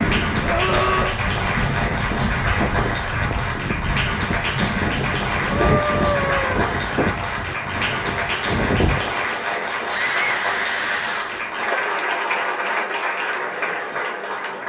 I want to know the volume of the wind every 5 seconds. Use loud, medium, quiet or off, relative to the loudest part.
loud, loud, off.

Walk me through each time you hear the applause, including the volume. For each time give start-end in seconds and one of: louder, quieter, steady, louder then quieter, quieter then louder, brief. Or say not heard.
0.0-14.6 steady.